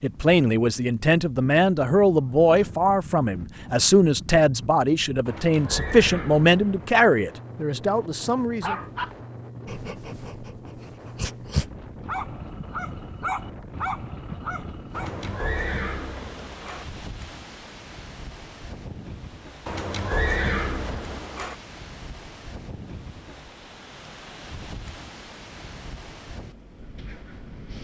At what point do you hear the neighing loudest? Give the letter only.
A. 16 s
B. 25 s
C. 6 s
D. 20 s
D.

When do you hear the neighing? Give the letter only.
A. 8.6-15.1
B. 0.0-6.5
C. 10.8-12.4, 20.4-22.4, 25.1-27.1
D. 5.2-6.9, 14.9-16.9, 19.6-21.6
D.